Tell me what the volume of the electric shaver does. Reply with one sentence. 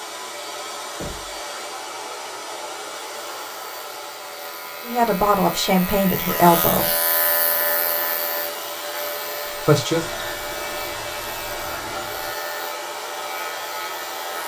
The loudness of the electric shaver goes up, then down.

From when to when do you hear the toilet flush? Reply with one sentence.
The toilet flush can be heard from 9.9 to 12.3 s.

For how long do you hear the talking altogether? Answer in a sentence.
You can hear the talking for 3 seconds altogether.